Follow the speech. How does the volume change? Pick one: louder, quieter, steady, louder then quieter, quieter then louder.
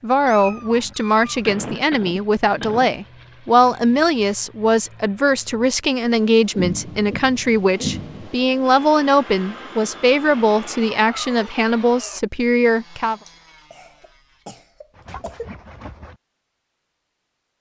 steady.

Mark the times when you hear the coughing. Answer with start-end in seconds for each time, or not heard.
1.4-2.9, 6.5-8.3, 13.2-15.5.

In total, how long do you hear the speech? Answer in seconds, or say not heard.
13 s.